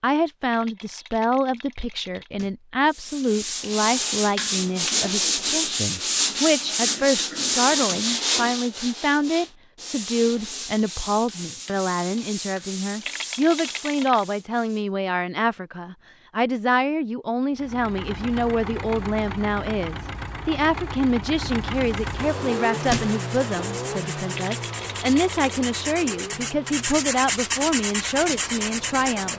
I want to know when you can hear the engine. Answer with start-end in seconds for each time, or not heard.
17.6-29.3.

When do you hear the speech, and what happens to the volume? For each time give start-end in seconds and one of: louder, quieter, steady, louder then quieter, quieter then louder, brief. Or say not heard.
0.0-29.3 steady.